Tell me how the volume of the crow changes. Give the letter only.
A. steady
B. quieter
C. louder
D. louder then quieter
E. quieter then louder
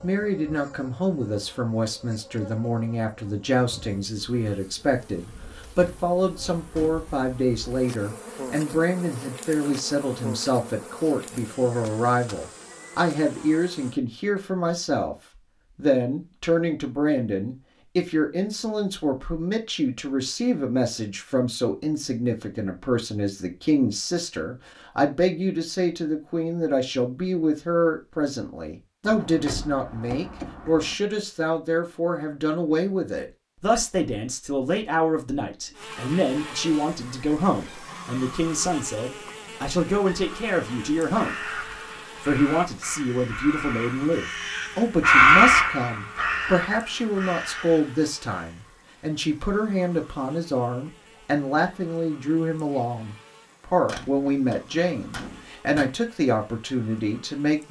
D.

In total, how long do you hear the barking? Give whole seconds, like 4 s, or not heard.
not heard.